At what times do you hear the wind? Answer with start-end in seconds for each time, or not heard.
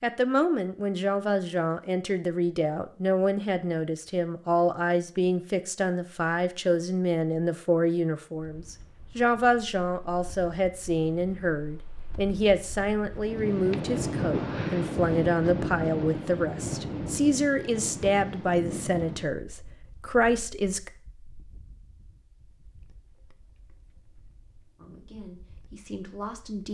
8.3-26.6.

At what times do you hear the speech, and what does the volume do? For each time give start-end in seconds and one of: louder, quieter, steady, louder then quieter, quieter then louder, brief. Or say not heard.
0.0-20.9 steady
24.8-26.6 brief.